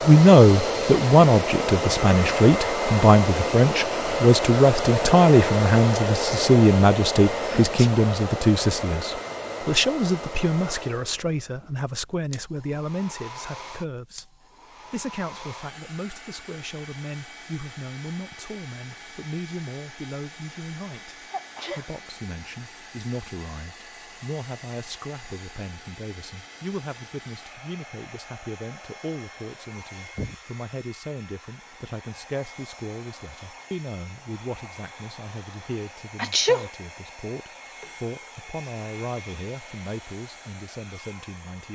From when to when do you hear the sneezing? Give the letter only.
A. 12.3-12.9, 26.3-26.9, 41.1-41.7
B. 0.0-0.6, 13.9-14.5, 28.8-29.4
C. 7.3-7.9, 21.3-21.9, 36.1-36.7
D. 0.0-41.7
C.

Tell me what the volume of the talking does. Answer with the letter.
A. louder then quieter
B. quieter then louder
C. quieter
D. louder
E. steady
C.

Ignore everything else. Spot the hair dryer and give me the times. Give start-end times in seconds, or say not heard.
0.0-41.7.